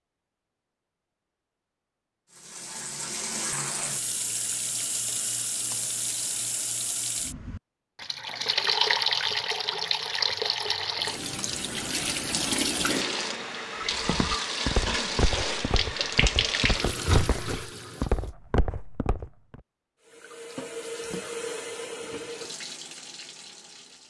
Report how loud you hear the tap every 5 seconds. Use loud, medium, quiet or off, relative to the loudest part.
medium, loud, loud, loud, medium.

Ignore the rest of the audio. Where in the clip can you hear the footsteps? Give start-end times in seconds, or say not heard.
14.0-19.6.